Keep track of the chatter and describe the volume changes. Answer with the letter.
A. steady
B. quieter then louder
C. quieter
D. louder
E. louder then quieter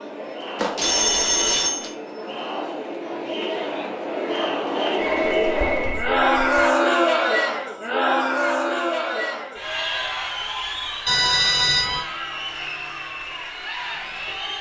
E.